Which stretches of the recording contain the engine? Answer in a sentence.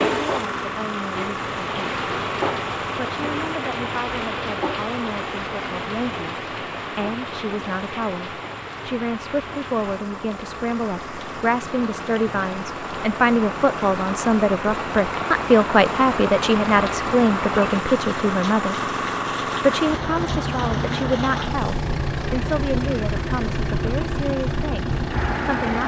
You can hear the engine from 0.0 to 25.8 s.